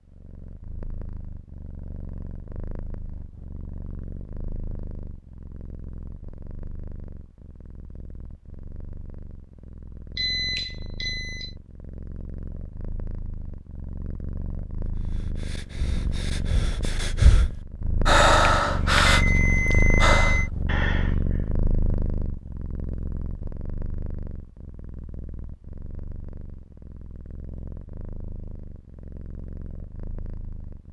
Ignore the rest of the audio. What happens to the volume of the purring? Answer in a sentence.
The volume of the purring goes up, then down.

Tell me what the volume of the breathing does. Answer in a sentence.
The volume of the breathing goes up, then down.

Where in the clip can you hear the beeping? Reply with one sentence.
The beeping can be heard from 10.2 to 11.5 s and from 18.6 to 20.4 s.